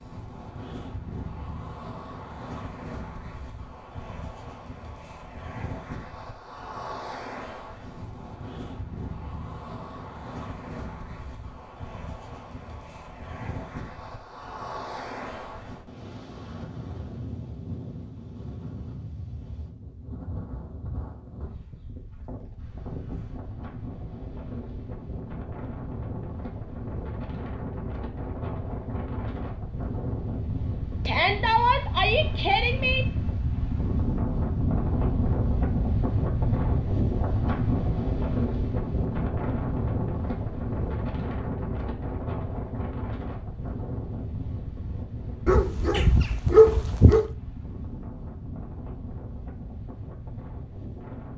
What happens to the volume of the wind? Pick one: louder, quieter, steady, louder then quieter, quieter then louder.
louder then quieter.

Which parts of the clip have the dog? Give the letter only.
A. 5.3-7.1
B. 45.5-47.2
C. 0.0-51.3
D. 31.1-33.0
B.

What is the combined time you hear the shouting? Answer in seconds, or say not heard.
2 s.